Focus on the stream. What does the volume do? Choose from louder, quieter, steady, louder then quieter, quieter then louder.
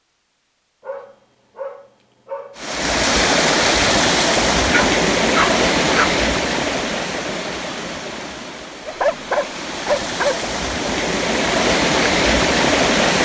quieter then louder.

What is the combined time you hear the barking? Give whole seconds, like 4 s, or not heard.
5 s.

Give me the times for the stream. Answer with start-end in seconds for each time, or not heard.
2.5-13.2.